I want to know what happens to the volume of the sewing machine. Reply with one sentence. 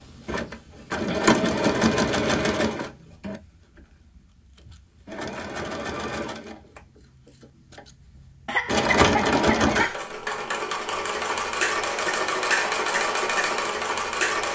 The volume of the sewing machine goes down, then up.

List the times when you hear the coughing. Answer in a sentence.
The coughing can be heard from 1.1 to 1.6 s and from 8.4 to 9.9 s.